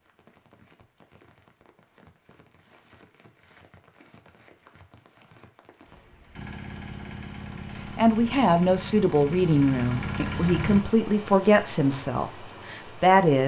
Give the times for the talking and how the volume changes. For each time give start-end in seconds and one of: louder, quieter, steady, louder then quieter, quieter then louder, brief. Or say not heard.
8.0-13.4 quieter.